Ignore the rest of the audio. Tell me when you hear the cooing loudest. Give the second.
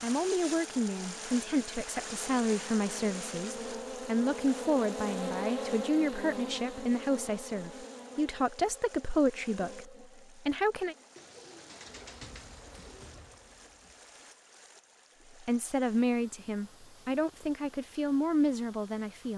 12 s.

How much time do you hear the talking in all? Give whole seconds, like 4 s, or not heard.
15 s.